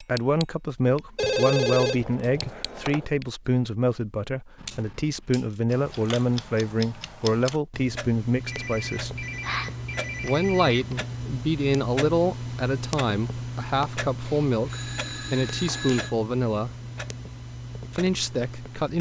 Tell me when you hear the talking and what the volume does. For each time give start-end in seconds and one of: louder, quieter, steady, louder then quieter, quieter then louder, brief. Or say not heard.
0.0-9.2 steady
10.2-16.7 steady
17.9-18.9 brief.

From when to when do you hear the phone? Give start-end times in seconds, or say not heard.
1.1-3.0, 8.4-10.9, 14.2-16.1.